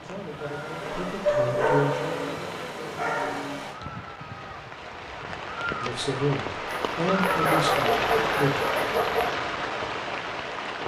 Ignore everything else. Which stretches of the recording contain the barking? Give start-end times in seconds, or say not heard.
0.8-3.5, 6.7-9.3.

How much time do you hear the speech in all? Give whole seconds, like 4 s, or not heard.
6 s.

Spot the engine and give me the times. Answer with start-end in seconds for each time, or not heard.
0.0-3.8.